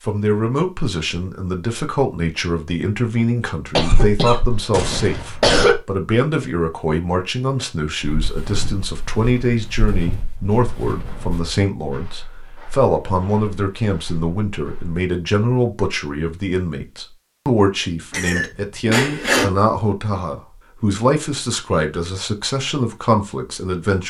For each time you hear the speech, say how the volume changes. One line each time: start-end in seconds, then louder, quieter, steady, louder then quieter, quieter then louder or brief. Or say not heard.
0.1-24.0 steady.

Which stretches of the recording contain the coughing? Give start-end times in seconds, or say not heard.
3.8-5.8, 18.1-19.4.